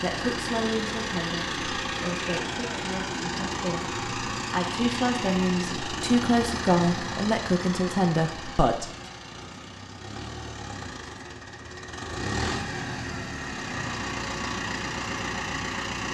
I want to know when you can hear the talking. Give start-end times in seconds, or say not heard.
0.0-8.8.